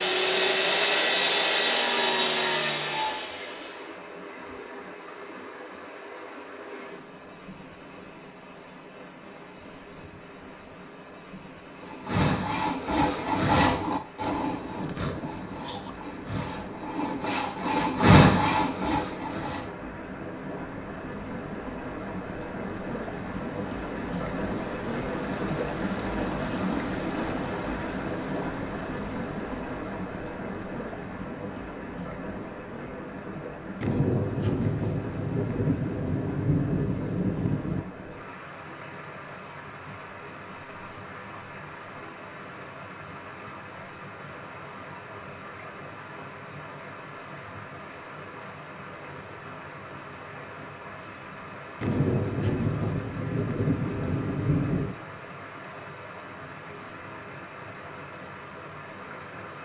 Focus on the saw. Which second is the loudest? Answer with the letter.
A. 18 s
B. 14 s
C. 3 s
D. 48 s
A.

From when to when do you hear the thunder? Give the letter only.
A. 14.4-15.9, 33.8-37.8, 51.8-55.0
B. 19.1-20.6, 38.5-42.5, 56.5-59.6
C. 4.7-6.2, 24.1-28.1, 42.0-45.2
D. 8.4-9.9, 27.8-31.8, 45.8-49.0
A.